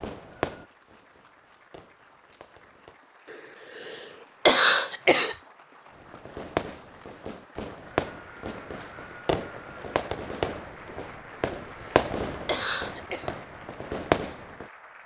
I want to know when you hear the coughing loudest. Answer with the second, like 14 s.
5 s.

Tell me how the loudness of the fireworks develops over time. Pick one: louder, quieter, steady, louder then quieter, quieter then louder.
louder.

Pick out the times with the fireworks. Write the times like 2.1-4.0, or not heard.
0.0-3.0, 6.0-14.7.